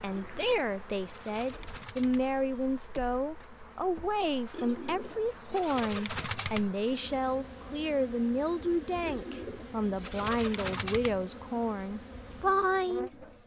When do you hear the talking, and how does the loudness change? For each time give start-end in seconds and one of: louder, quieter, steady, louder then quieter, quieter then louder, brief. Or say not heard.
0.0-13.1 steady.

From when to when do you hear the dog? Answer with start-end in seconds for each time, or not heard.
not heard.